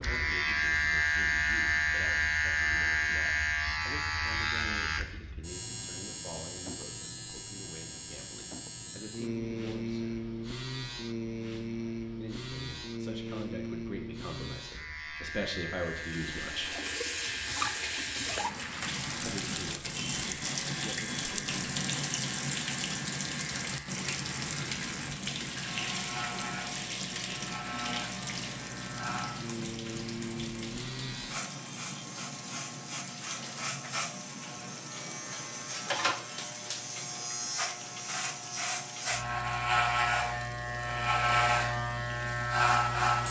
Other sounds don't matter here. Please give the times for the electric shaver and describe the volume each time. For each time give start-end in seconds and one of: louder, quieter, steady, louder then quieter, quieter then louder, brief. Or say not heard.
0.0-43.2 quieter then louder.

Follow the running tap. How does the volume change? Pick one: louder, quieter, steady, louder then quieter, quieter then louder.
quieter.